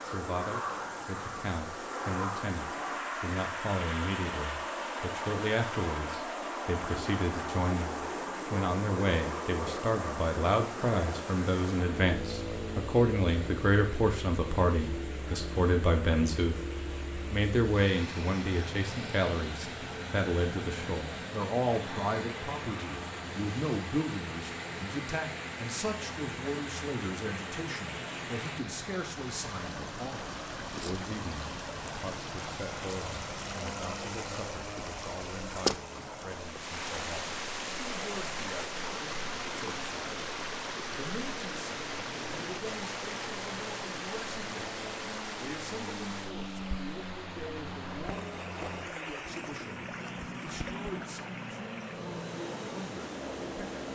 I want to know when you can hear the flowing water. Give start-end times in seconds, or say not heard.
0.0-53.8.